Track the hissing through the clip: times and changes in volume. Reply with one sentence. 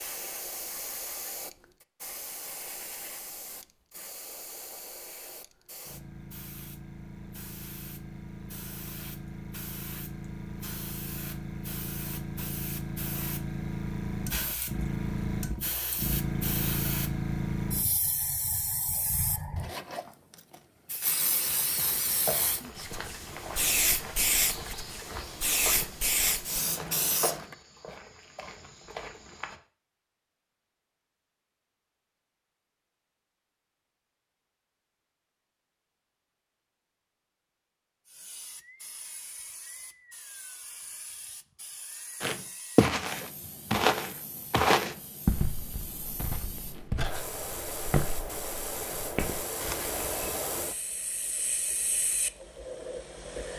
The hissing can be heard from 0.0 to 27.6 s, getting louder; and from 38.0 to 53.5 s, getting louder.